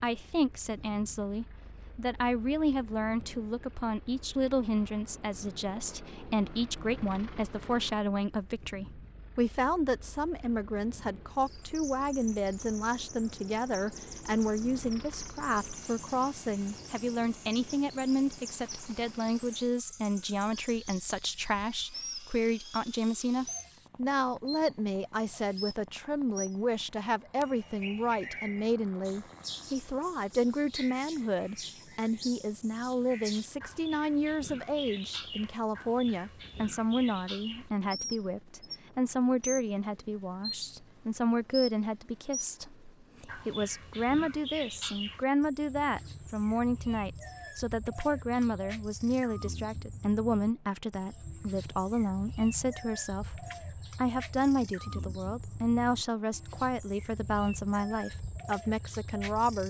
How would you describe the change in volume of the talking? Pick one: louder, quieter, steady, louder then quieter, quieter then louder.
steady.